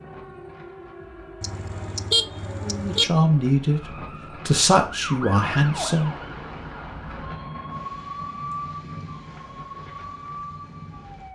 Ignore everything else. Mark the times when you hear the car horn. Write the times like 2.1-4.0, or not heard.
1.4-3.0.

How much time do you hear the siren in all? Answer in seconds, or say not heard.
11 s.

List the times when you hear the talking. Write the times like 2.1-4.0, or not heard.
2.6-6.1.